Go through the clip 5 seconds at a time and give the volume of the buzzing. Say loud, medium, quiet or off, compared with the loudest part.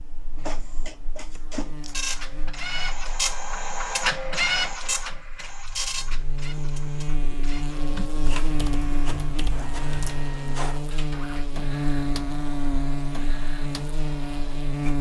quiet, loud, loud.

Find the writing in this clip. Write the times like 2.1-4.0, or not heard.
not heard.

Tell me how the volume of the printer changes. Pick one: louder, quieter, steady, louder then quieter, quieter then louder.
louder then quieter.